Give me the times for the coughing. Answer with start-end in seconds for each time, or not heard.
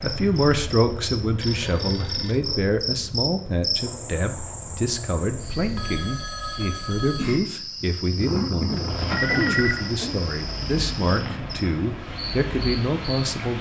8.3-10.2.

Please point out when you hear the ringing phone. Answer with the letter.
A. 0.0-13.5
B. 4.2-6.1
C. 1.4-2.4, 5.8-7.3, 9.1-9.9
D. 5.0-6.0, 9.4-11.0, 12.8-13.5
C.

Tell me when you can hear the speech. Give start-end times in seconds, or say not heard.
0.0-13.5.